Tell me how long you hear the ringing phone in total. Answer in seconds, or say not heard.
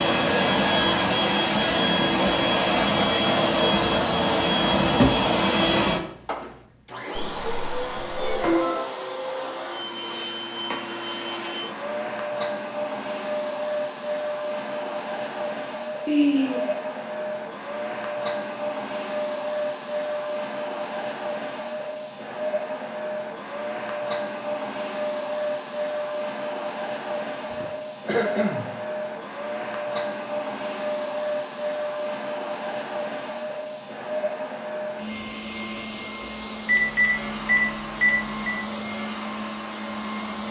3 s.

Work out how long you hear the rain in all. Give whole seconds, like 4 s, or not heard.
not heard.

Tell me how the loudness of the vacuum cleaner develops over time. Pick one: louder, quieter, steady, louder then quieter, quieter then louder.
quieter.